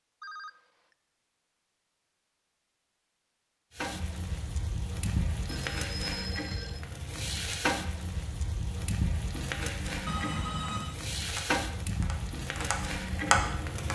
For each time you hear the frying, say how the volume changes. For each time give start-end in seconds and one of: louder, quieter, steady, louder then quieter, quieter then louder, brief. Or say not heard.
3.7-13.9 steady.